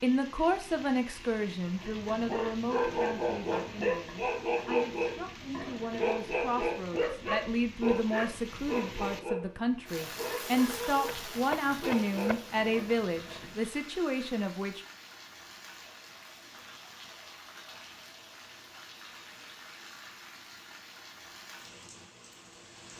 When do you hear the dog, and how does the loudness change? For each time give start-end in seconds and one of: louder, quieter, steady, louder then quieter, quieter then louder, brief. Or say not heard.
1.6-13.6 quieter.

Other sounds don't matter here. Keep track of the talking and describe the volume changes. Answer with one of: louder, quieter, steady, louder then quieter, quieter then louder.
quieter then louder.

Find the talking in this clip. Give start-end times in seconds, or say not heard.
0.0-14.8.